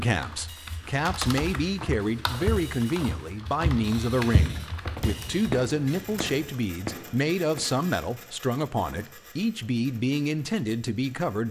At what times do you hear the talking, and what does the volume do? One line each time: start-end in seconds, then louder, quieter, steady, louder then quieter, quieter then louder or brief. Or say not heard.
0.0-11.4 steady.